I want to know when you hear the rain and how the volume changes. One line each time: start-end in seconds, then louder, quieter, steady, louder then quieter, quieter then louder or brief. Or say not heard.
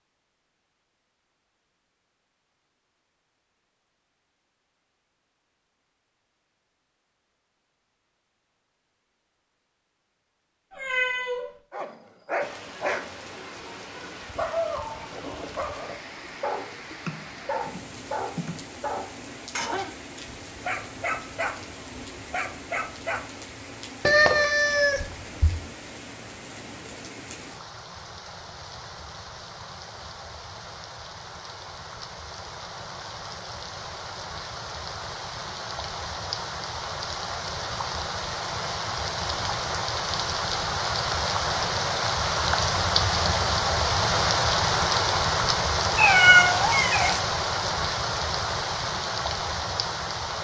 12.4-50.3 louder.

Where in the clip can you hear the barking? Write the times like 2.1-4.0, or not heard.
11.7-23.2.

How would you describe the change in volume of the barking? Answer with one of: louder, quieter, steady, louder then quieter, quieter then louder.
steady.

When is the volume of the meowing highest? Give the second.
46 s.